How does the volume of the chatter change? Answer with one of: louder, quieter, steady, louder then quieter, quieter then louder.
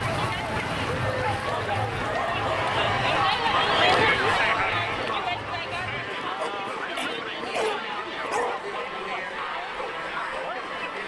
louder then quieter.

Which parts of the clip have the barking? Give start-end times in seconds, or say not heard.
1.0-3.0, 6.2-8.7.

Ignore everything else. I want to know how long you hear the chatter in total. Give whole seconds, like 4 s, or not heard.
11 s.